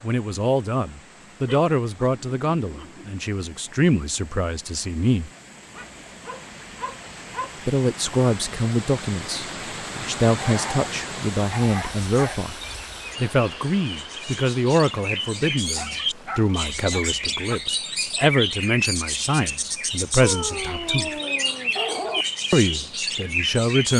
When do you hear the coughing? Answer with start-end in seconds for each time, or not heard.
not heard.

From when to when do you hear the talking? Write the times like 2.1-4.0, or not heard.
0.0-5.3, 7.7-12.6, 13.2-21.2, 22.5-23.9.